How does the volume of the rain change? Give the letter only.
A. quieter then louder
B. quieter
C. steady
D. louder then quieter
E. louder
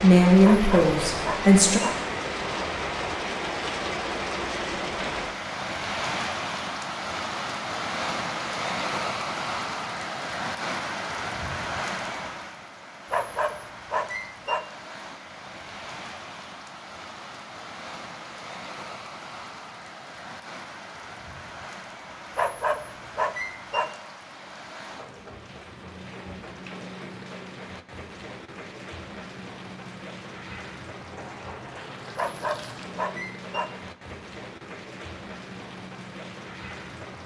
B.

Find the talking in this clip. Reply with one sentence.
You can hear the talking from 0.0 to 1.8 s.